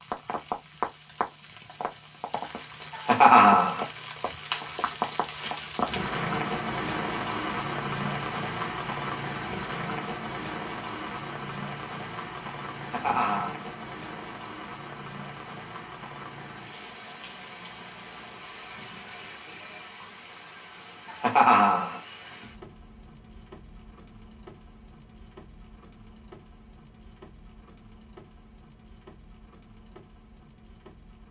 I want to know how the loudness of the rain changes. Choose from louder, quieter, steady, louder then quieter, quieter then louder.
quieter.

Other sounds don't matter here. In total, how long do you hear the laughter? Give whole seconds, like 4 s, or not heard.
3 s.